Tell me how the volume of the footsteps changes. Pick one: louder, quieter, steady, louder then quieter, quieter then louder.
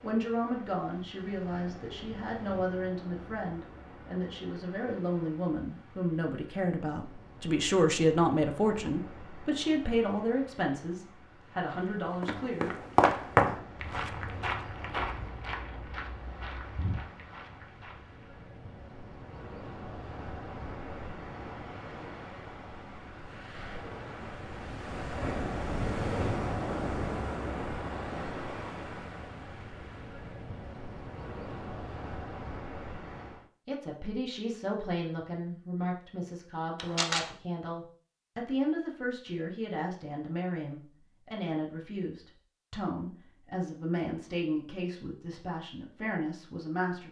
quieter.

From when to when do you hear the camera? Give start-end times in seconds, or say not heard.
36.8-37.3.